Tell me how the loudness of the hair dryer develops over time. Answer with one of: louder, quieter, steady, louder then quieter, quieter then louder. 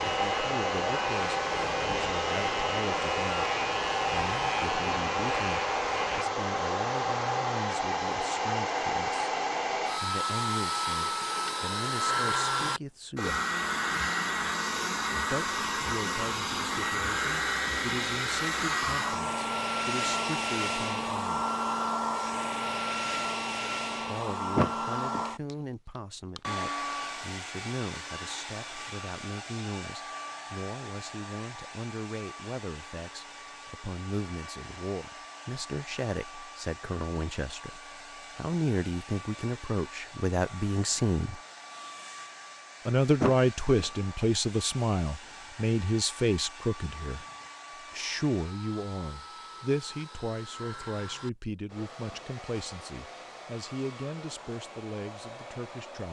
quieter.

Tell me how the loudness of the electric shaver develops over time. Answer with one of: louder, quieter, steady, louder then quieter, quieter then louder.
steady.